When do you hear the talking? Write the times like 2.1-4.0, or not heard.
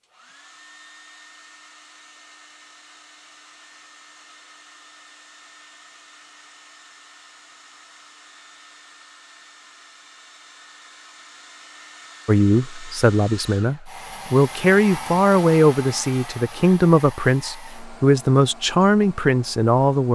12.2-20.1.